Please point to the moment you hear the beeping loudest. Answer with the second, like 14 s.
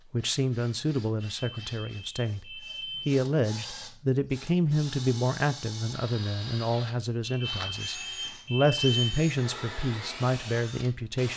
9 s.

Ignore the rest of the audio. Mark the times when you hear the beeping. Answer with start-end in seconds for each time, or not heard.
1.2-3.1, 7.2-9.2.